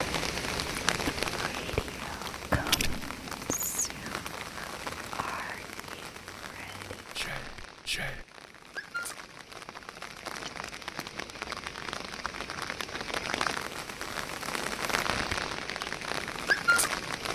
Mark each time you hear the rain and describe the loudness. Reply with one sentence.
The rain can be heard from 0.0 to 17.3 s, getting quieter then louder.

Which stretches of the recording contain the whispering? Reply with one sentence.
You can hear the whispering from 1.3 to 8.2 s.